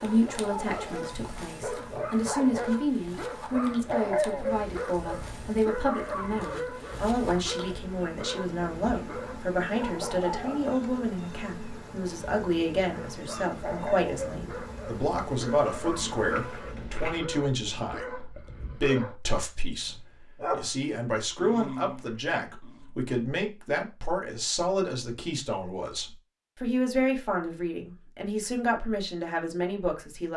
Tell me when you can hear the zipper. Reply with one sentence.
You can hear the zipper from 16.3 to 17.2 s.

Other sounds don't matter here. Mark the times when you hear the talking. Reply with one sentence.
The talking can be heard from 0.0 to 30.3 s.